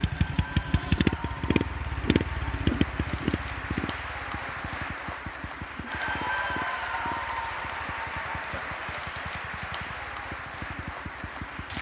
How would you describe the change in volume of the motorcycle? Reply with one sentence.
The loudness of the motorcycle goes down.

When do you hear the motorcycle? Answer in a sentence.
You can hear the motorcycle from 0.0 to 11.7 s.